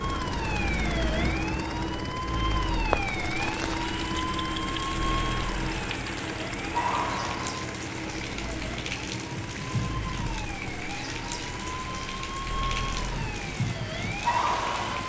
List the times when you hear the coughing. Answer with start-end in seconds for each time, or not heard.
not heard.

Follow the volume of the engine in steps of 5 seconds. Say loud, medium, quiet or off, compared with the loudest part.
loud, loud, medium.